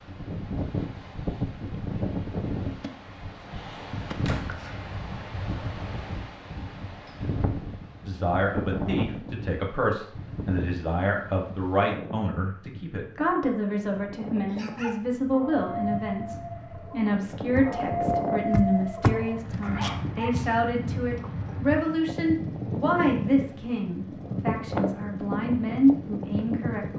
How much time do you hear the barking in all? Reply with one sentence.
You can hear the barking for 6 seconds altogether.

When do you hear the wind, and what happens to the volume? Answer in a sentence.
You can hear the wind from 0.0 to 26.9 s, getting quieter then louder.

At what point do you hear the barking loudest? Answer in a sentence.
The loudest moment of the barking is at 18 seconds.